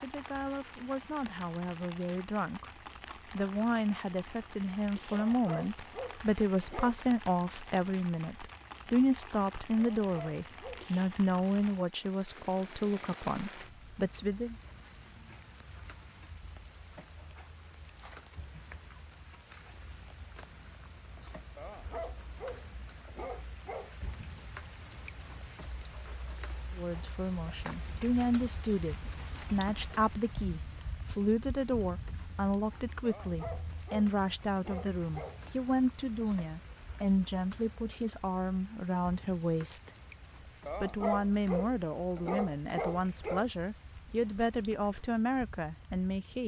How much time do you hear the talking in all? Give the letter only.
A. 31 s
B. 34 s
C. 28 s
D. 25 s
B.